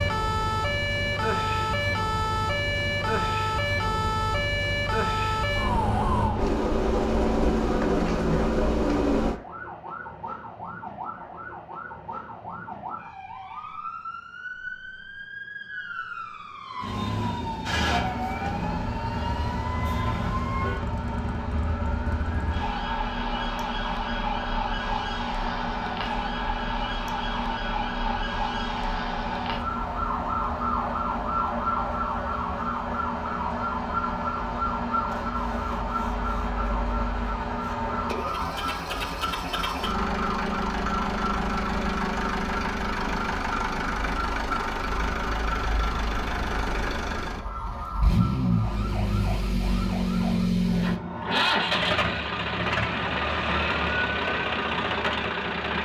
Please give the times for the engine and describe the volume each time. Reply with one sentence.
The engine can be heard from 0.0 to 9.4 s, getting louder; and from 17.8 to 55.8 s, getting louder.